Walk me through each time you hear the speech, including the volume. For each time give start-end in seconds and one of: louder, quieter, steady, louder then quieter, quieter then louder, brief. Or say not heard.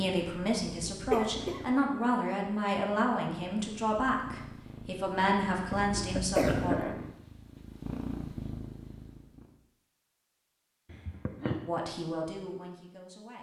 0.0-6.8 steady
11.7-13.3 brief.